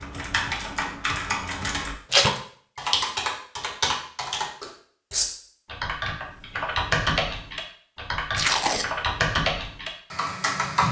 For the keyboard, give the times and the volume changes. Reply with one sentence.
You can hear the keyboard from 0.0 to 10.8 s, at a steady volume.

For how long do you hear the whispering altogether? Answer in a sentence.
You can't hear the whispering here.